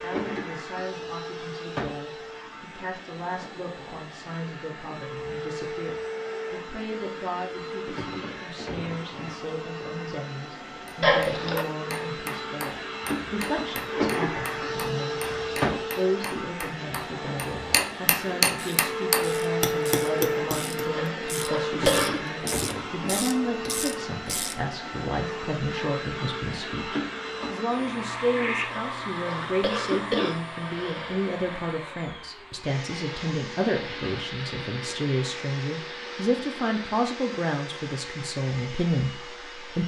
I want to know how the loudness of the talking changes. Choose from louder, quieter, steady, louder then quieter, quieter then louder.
louder.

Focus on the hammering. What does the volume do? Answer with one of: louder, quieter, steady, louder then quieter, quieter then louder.
louder.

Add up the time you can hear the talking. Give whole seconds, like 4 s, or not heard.
40 s.